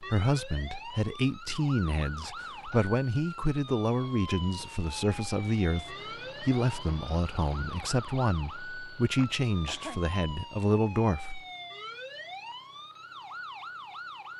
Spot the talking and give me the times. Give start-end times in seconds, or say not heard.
0.0-11.4.